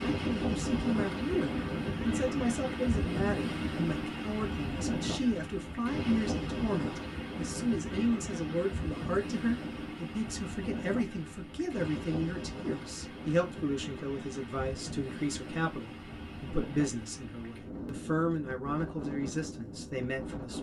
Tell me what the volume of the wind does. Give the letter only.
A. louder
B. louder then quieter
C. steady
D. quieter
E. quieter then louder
D.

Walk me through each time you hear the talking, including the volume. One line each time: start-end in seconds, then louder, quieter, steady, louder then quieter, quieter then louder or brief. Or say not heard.
0.1-20.5 steady.